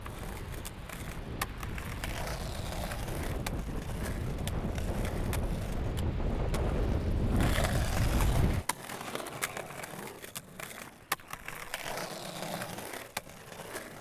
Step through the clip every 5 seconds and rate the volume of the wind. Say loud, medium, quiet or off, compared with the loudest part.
medium, loud, off.